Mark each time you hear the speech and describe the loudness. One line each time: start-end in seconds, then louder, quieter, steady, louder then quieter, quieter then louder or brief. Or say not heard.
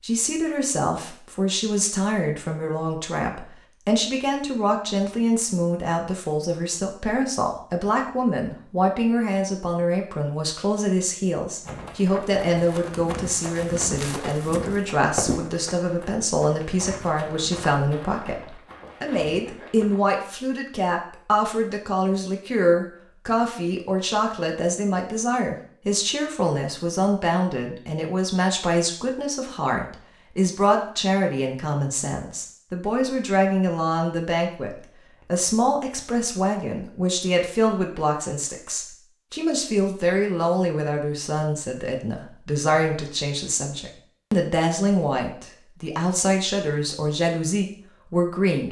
0.0-48.6 steady.